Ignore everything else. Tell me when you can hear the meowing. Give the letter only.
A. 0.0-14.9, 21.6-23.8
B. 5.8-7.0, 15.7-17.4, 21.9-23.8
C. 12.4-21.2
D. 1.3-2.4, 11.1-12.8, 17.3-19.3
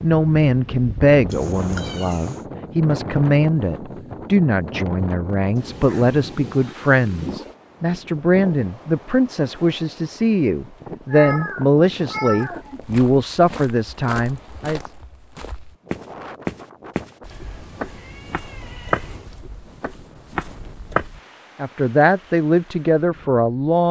D.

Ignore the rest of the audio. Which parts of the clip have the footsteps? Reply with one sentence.
You can hear the footsteps from 12.4 to 21.2 s.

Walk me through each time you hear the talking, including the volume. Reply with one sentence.
You can hear the talking from 0.0 to 14.9 s, at a steady volume; and briefly from 21.6 to 23.8 s.